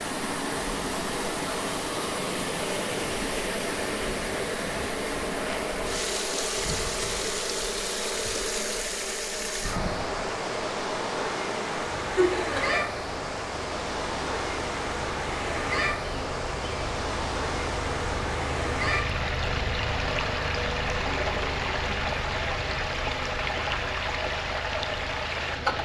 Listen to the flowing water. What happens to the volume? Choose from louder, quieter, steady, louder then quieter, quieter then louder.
steady.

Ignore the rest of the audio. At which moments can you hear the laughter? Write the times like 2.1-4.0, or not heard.
12.0-12.8.